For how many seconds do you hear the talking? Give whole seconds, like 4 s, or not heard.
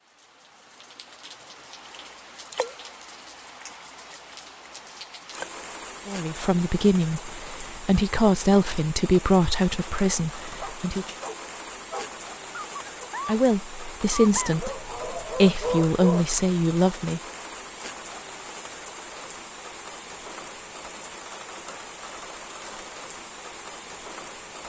9 s.